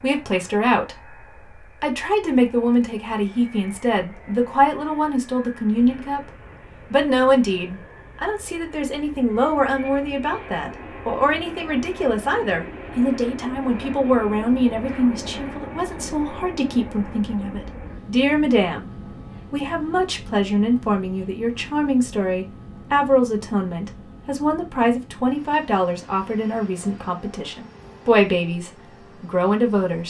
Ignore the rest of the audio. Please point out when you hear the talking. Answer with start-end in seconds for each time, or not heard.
0.0-6.3, 6.9-18.9, 19.5-30.0.